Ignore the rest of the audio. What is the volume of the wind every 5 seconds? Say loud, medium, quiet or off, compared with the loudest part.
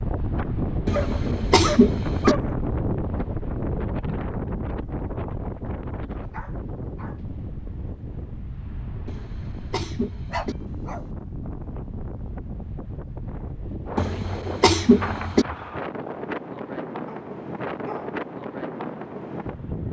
loud, medium, medium, loud.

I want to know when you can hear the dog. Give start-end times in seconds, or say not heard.
0.9-2.5, 5.7-7.2, 10.3-11.1, 17.1-18.1.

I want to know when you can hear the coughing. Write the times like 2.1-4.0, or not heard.
0.8-2.4, 9.1-10.6, 13.9-15.4.